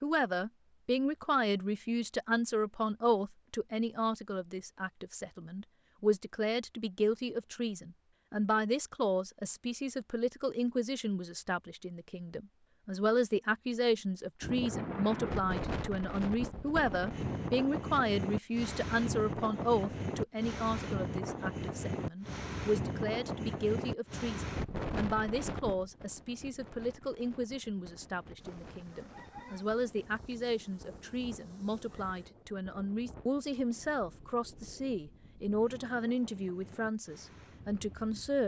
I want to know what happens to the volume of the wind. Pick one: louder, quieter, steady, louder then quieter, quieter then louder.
quieter.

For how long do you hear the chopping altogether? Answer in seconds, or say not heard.
not heard.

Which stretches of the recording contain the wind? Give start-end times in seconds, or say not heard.
14.4-38.4.